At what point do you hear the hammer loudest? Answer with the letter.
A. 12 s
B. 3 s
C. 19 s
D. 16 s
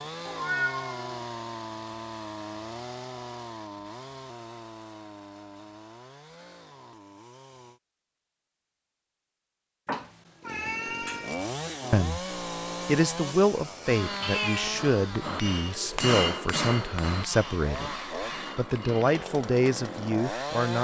D.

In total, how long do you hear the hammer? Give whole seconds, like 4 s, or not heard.
6 s.